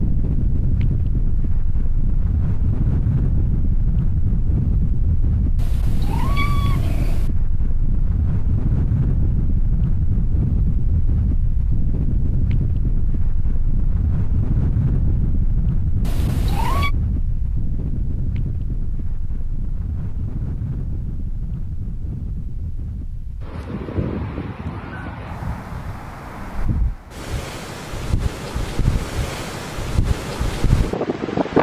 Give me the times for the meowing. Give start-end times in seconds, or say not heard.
5.5-7.3, 16.0-16.9.